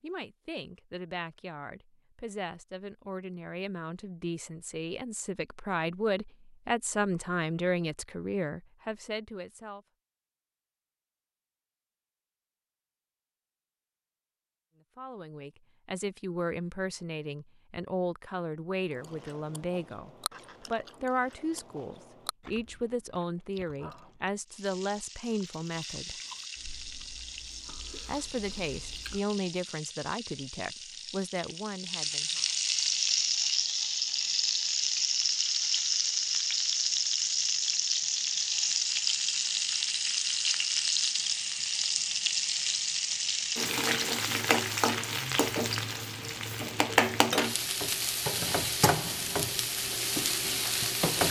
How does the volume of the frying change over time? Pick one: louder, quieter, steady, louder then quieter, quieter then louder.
louder.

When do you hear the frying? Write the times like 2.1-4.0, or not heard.
24.4-51.2.